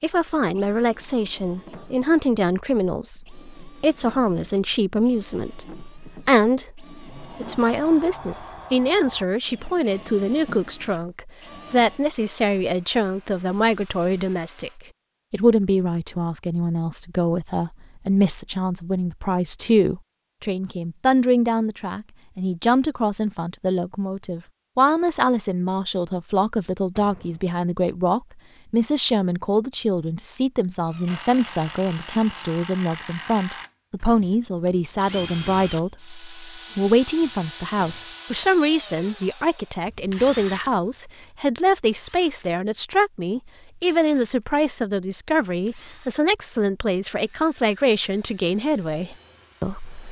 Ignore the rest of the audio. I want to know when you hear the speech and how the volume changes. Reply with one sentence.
You can hear the speech from 0.0 to 50.0 s, at a steady volume.